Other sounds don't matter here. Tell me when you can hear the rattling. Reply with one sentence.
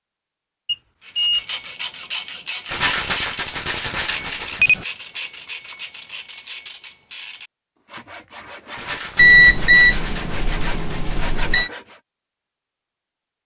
You can hear the rattling from 2.6 to 4.6 s and from 8.8 to 11.4 s.